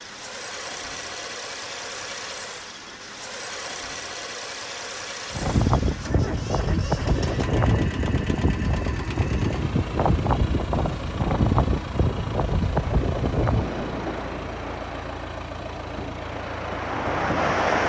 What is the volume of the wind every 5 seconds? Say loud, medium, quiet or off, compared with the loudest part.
off, loud, loud, loud.